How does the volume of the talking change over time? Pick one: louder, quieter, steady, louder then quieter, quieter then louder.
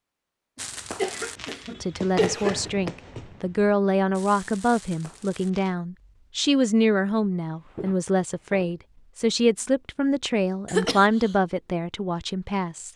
steady.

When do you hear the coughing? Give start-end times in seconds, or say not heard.
1.0-2.7, 10.7-11.3.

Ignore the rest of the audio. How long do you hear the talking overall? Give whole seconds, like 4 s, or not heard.
11 s.